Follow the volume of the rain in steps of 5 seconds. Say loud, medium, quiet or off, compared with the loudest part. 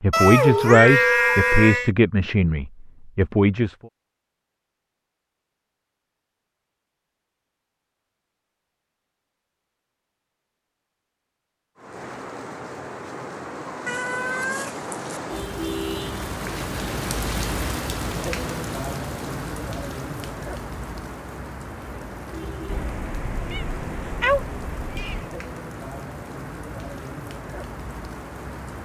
off, off, medium, loud, medium, medium.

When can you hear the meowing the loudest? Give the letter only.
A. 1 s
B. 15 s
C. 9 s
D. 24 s
A.